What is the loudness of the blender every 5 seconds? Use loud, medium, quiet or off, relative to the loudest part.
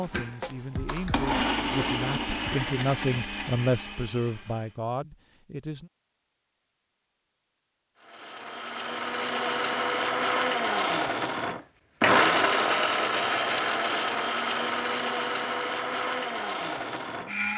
medium, medium, loud, medium.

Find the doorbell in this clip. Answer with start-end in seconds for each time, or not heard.
not heard.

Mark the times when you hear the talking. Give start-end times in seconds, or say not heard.
0.0-5.9.